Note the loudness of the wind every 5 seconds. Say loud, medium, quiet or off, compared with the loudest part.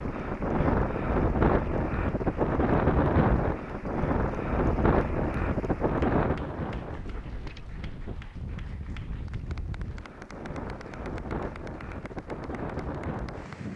loud, medium, medium.